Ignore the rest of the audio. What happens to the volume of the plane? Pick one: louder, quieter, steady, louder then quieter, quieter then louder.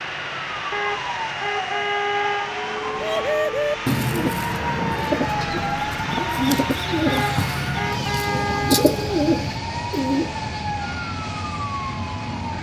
steady.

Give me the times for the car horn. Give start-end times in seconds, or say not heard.
0.7-2.6, 7.0-8.9.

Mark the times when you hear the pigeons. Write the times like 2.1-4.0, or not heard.
3.0-10.3.